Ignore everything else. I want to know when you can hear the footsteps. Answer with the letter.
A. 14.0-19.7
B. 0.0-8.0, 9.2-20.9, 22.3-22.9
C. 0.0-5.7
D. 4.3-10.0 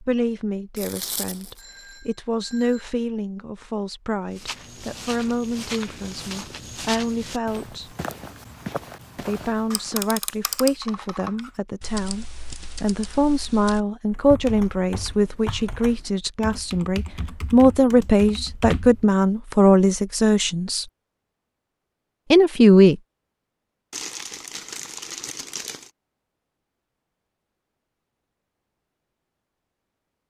D.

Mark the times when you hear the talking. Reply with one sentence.
The talking can be heard from 0.0 to 8.0 s, from 9.2 to 20.9 s and from 22.3 to 22.9 s.